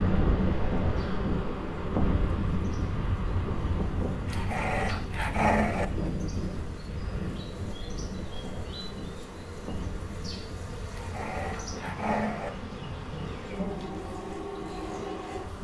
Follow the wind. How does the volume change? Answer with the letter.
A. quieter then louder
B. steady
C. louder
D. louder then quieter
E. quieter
E.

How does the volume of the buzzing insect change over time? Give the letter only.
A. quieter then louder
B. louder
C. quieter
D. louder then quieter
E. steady
B.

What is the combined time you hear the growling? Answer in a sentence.
You can hear the growling for 3 seconds altogether.